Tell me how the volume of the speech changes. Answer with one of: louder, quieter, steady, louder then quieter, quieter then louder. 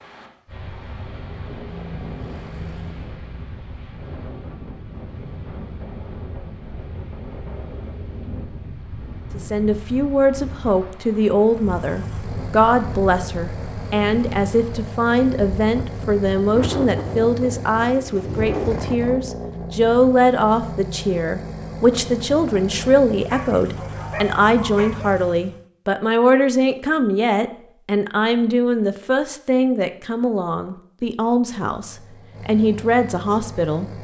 steady.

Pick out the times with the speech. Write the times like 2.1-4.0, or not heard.
9.3-33.9.